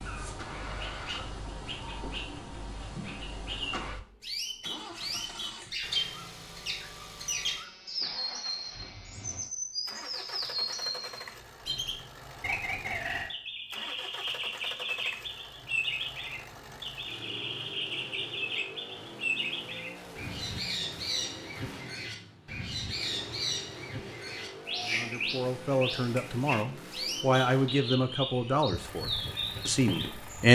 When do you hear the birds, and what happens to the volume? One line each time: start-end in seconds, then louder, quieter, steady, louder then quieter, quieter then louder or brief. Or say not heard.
0.0-30.5 steady.